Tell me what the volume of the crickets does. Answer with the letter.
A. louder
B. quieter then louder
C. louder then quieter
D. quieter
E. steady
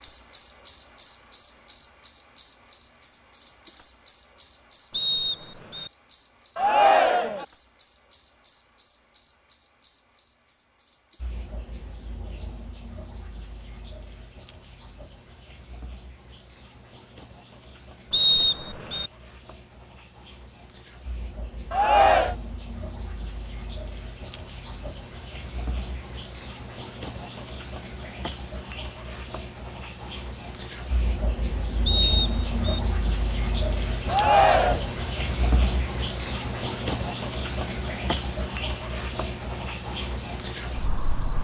B.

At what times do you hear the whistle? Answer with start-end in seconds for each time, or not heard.
4.9-5.9, 18.1-19.1, 31.9-32.8.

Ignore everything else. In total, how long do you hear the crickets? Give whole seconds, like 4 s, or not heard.
41 s.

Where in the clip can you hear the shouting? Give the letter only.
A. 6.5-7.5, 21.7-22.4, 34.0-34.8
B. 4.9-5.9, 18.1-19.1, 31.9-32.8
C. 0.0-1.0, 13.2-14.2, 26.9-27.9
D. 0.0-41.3
A.